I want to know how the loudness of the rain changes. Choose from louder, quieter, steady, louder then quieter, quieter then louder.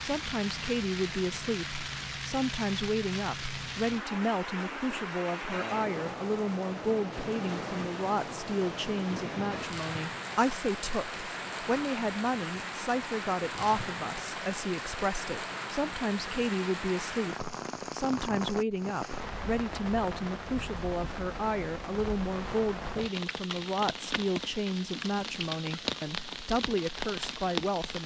steady.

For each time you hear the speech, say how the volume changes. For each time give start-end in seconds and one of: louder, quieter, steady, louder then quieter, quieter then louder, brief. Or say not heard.
0.0-28.0 steady.